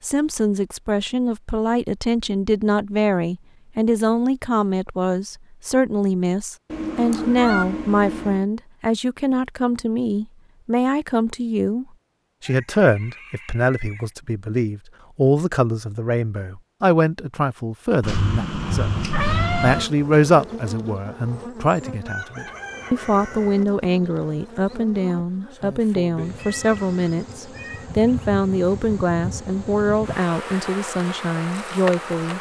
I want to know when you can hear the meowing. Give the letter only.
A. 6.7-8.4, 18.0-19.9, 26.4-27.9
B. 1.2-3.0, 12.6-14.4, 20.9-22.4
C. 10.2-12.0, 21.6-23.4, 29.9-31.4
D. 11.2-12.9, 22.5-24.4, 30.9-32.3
A.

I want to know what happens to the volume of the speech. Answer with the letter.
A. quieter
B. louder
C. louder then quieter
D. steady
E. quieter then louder
D.